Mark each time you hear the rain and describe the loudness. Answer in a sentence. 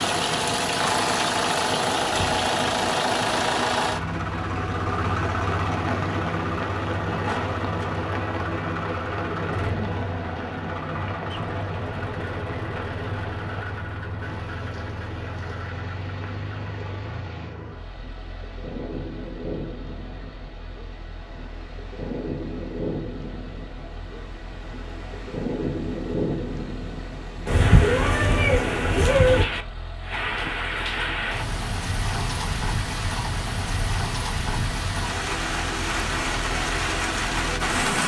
The rain can be heard from 0.0 to 38.0 s, getting quieter then louder.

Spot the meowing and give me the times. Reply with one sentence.
You can hear the meowing from 27.4 to 29.4 s.